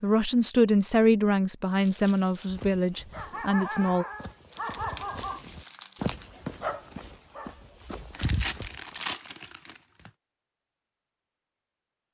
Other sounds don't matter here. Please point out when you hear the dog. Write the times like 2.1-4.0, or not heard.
2.5-8.9.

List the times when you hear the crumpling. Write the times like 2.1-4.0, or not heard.
1.8-2.5, 4.5-6.2, 8.1-10.1.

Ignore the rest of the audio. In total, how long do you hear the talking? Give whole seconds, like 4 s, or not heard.
4 s.